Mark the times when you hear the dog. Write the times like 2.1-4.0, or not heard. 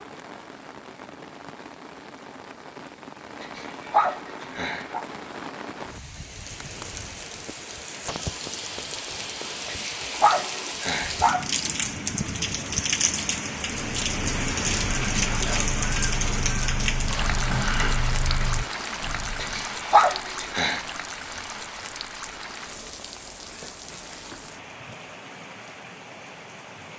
3.4-5.0, 9.7-11.4, 19.4-20.8.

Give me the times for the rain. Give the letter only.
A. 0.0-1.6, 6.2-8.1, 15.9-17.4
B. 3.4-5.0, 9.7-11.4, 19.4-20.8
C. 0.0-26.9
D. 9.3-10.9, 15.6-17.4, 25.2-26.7
C.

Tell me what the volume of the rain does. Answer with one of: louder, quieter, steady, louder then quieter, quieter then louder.
louder then quieter.